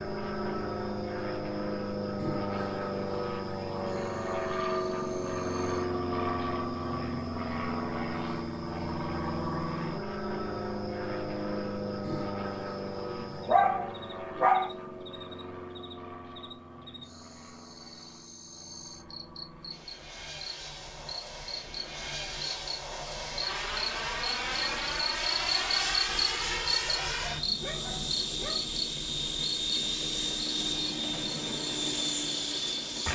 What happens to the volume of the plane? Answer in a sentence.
The loudness of the plane goes down, then up.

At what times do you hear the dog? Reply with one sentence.
The dog can be heard from 13.1 to 14.7 s and from 26.9 to 28.7 s.